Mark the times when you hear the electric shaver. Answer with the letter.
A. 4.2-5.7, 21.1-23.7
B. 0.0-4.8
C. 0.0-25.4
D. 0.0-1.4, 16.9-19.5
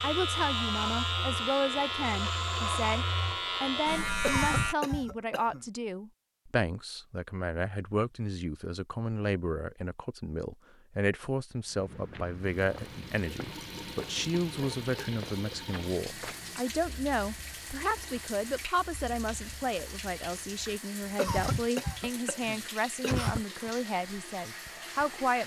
B.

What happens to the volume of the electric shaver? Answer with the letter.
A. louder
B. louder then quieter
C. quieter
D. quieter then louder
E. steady
E.